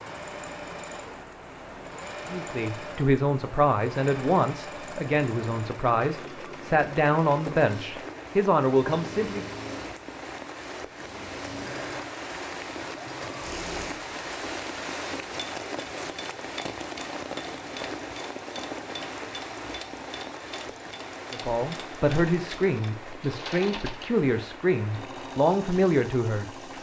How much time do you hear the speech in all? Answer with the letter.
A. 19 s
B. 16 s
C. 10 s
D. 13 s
D.